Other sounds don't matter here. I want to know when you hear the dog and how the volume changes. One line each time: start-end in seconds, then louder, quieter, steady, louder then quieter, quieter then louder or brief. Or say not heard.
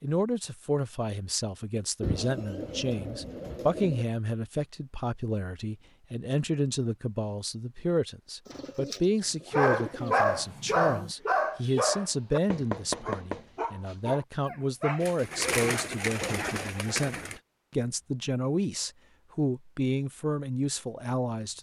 9.5-16.6 quieter.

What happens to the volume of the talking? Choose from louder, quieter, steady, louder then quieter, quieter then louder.
steady.